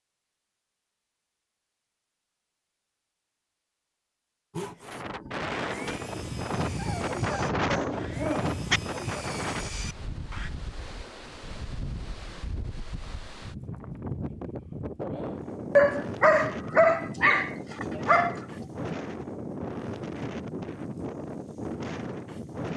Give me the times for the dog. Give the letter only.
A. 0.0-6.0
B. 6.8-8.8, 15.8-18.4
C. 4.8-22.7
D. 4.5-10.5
B.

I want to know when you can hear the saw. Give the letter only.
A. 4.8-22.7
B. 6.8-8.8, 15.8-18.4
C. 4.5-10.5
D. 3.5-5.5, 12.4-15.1
C.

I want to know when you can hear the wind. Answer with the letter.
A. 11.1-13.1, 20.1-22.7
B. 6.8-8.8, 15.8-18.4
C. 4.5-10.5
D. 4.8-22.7
D.